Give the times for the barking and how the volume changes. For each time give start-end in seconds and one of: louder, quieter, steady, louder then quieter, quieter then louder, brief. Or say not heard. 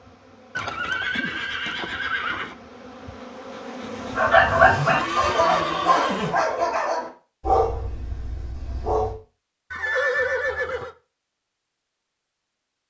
4.2-9.2 quieter.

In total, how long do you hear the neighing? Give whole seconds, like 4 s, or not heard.
5 s.